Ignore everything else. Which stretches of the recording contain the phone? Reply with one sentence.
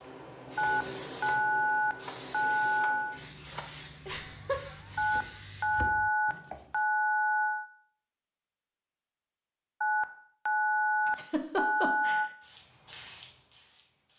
You can hear the phone from 0.6 to 3.2 s, from 5.0 to 7.7 s and from 9.8 to 12.3 s.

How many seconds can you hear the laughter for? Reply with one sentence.
You can hear the laughter for 2 seconds altogether.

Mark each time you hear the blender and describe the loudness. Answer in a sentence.
You can't hear the blender here.